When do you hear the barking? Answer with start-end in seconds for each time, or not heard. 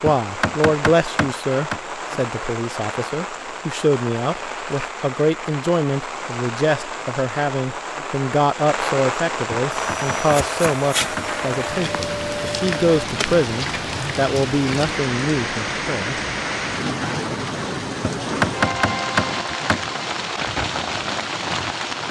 not heard.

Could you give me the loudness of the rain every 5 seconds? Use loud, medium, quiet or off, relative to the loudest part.
medium, loud, loud, loud, loud.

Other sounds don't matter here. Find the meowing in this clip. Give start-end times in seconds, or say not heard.
not heard.